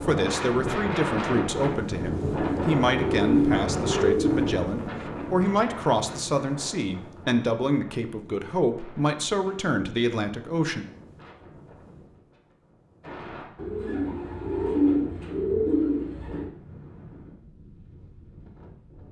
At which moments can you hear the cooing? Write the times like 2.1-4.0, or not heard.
2.1-4.5, 13.6-16.5.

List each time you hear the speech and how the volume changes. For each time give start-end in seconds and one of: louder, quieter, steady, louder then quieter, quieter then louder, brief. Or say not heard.
0.0-10.8 steady.